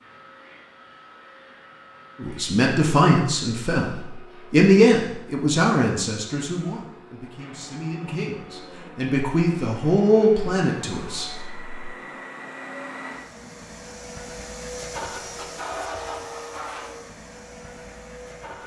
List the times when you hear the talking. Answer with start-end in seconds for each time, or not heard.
2.2-11.8.